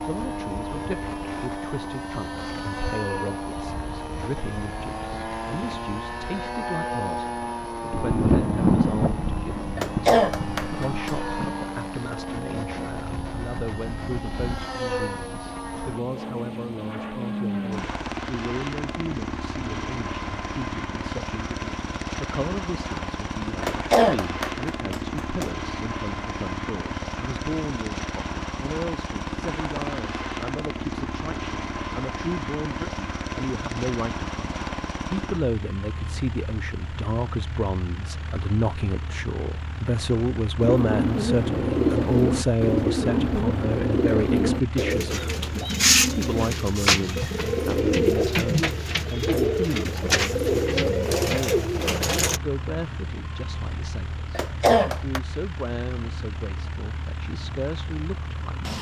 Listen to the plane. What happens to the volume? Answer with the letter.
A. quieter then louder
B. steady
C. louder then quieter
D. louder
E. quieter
E.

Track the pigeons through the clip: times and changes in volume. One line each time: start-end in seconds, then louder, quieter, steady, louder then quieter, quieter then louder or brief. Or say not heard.
40.6-52.4 steady.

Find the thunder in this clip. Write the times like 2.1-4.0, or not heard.
7.9-11.6.